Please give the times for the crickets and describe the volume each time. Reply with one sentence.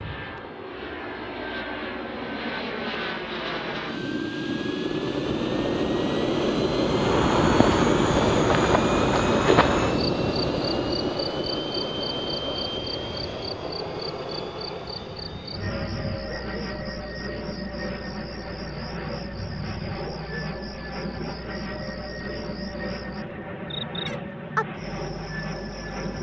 You can hear the crickets from 6.8 to 26.1 s, getting quieter then louder.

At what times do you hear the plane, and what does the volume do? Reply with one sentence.
You can hear the plane from 0.0 to 26.1 s, getting louder then quieter.